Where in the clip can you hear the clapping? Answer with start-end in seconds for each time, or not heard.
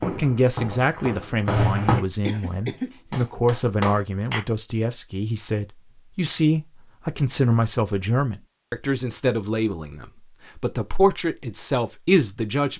2.4-4.5.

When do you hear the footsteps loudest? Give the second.
2 s.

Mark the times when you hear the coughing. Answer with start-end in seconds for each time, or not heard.
2.2-3.2.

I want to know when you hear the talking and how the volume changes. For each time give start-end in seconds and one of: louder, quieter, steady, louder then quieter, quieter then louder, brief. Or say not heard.
0.0-12.7 steady.